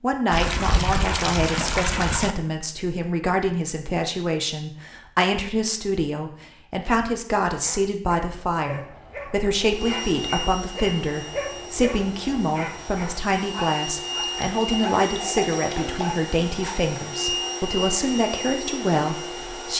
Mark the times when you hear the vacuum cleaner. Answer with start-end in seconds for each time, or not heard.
9.6-19.7.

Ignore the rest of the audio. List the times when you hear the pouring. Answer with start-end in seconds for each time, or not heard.
0.3-2.4, 14.0-16.1.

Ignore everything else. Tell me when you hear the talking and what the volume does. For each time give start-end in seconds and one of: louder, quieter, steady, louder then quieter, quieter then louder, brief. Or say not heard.
0.0-19.7 steady.